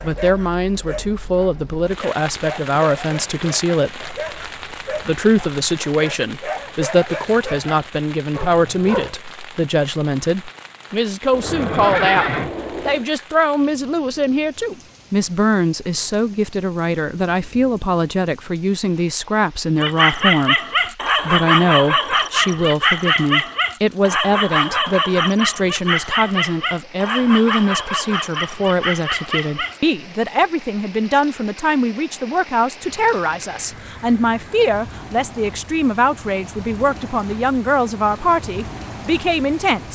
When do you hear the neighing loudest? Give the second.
12 s.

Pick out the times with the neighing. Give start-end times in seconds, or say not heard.
11.3-13.1, 32.8-34.6.